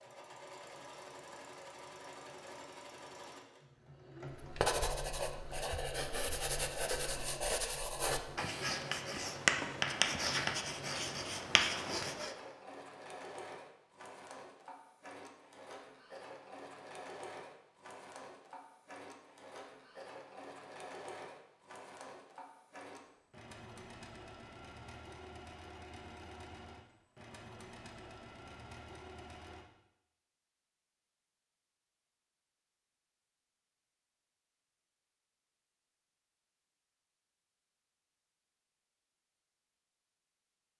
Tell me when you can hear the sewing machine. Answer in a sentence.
You can hear the sewing machine from 0.0 to 29.6 s.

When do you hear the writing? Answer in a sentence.
The writing can be heard from 4.3 to 12.3 s.